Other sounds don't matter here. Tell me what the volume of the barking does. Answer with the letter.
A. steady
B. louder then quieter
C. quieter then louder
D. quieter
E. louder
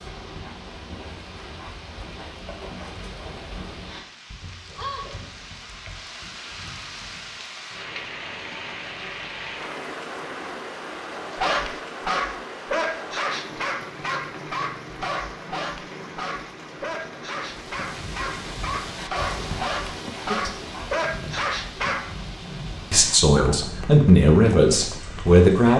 C.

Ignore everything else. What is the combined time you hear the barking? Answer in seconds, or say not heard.
11 s.